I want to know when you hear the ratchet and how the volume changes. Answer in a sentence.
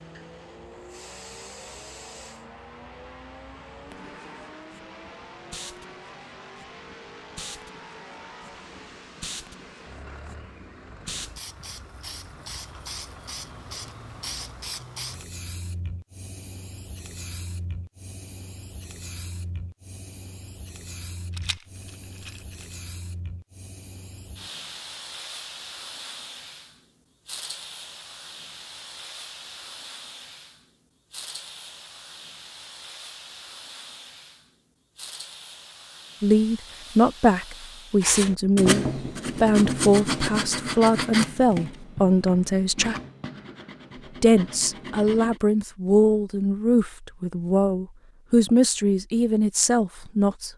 You can't hear the ratchet here.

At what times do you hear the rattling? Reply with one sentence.
You can hear the rattling from 21.3 to 22.8 s.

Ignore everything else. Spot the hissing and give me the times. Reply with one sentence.
The hissing can be heard from 0.0 to 38.1 s.